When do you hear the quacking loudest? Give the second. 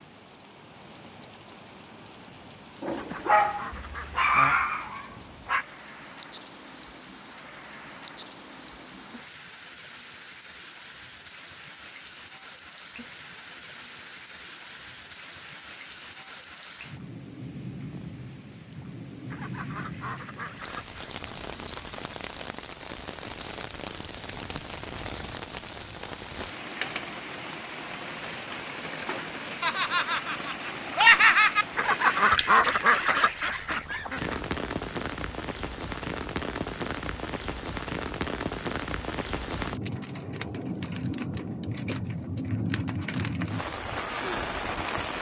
32 s.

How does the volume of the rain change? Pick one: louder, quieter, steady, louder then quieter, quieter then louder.
louder.